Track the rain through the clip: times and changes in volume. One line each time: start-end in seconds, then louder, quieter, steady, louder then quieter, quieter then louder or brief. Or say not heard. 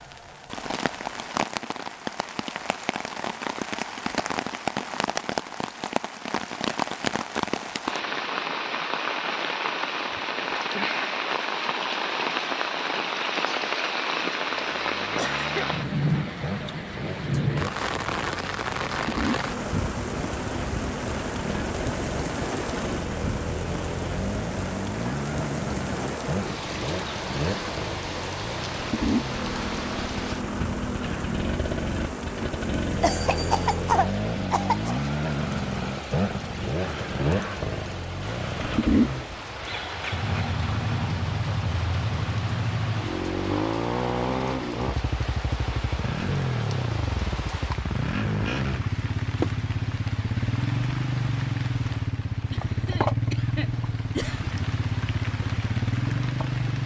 0.0-56.8 quieter.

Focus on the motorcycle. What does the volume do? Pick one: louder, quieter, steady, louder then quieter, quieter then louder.
louder.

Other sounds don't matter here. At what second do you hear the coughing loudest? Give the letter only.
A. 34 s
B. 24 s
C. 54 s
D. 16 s
A.